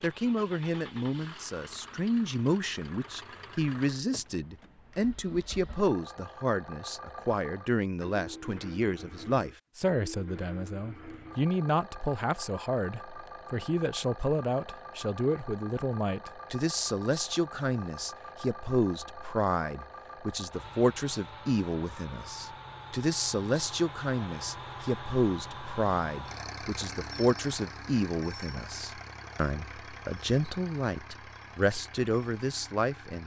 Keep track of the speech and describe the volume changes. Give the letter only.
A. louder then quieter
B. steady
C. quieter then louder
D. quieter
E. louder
B.